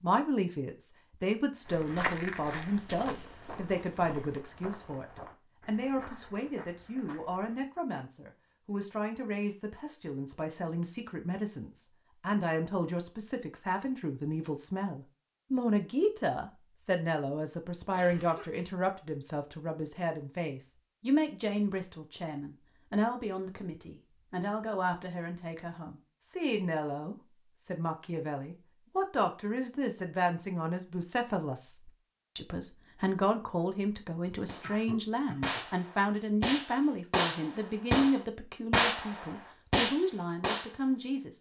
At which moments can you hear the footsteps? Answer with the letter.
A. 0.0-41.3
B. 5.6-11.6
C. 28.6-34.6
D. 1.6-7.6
D.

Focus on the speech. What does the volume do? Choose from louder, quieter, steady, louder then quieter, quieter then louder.
steady.